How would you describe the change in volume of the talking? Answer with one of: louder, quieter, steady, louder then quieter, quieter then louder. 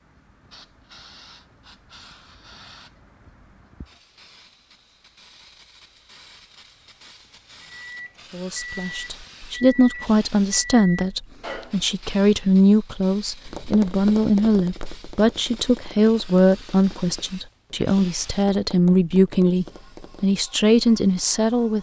steady.